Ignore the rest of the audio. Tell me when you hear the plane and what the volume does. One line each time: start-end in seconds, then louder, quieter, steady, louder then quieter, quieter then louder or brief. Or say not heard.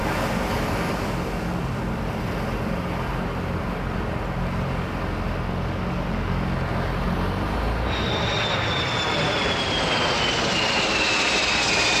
0.1-11.9 louder.